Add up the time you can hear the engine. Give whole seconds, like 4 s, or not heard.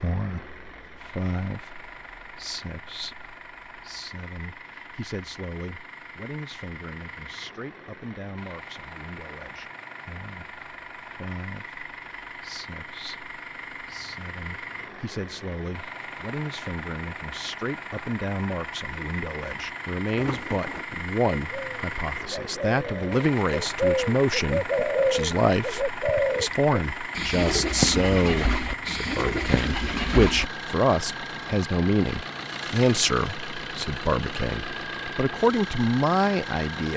37 s.